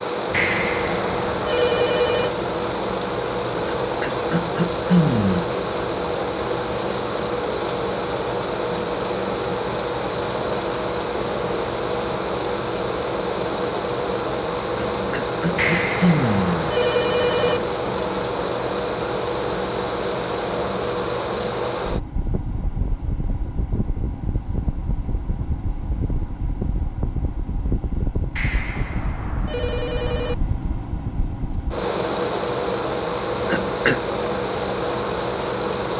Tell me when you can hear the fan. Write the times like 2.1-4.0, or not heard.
0.0-35.9.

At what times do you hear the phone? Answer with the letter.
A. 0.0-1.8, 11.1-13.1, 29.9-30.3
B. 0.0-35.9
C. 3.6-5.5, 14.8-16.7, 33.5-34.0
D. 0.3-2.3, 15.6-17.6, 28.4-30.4
D.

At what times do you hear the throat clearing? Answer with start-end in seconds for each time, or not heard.
3.6-5.5, 14.8-16.7, 33.5-34.0.